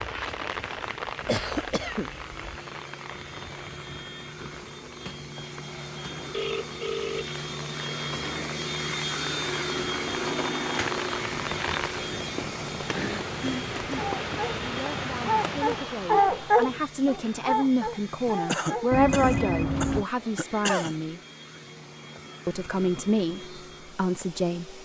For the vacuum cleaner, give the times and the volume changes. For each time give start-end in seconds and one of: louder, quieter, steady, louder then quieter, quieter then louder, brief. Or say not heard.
0.0-24.8 louder then quieter.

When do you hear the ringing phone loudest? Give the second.
19 s.